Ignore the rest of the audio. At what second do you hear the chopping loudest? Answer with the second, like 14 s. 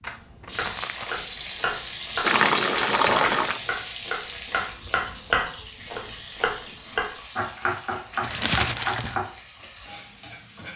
5 s.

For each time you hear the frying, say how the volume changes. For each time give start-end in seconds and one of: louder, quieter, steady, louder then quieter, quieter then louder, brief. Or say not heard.
0.0-10.7 quieter.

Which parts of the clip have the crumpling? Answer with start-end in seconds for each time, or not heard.
0.0-1.6, 8.2-9.2.